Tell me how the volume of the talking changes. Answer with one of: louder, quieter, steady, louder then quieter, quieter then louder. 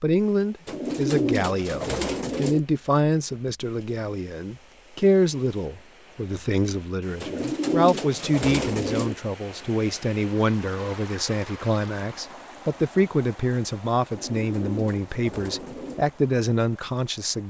steady.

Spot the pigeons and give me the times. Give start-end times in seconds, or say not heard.
0.7-2.6, 7.2-9.2, 14.1-16.1.